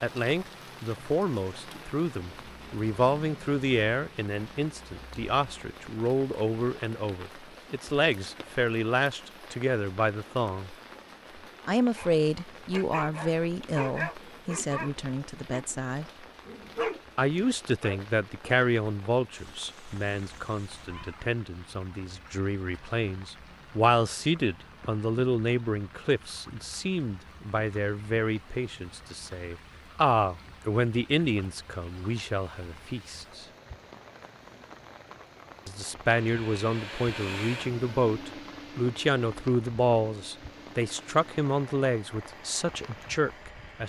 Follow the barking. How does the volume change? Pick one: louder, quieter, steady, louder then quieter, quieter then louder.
quieter then louder.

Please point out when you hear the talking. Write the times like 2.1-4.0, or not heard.
0.0-10.7, 11.7-16.1, 17.1-33.5, 35.6-43.8.